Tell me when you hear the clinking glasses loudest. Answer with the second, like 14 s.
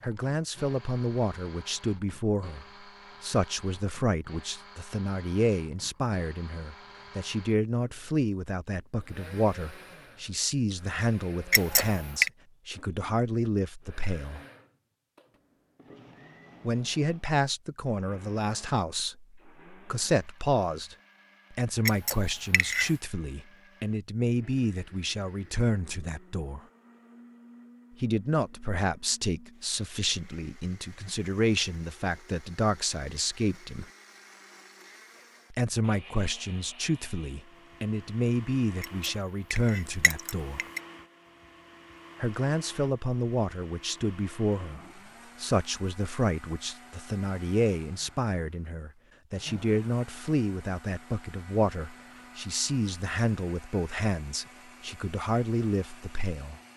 12 s.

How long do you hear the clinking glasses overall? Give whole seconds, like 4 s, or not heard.
4 s.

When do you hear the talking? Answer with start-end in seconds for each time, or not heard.
0.0-14.4, 16.6-26.6, 28.0-33.9, 35.5-40.6, 42.2-44.8, 45.4-56.6.